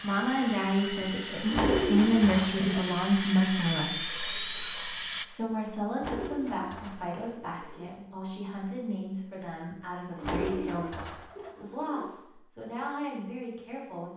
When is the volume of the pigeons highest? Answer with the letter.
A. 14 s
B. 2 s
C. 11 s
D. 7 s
B.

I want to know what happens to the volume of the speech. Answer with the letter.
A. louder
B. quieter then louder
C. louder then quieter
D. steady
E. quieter
E.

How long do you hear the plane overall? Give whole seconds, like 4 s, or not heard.
5 s.